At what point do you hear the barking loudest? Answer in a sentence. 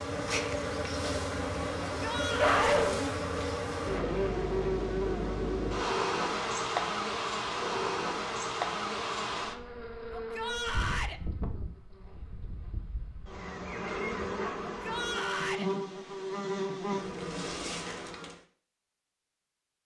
The loudest moment of the barking is at 3 seconds.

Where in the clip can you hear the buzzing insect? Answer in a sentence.
The buzzing insect can be heard from 0.0 to 18.4 s.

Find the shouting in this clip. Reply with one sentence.
The shouting can be heard from 1.9 to 2.6 s, from 10.1 to 11.2 s and from 14.7 to 15.7 s.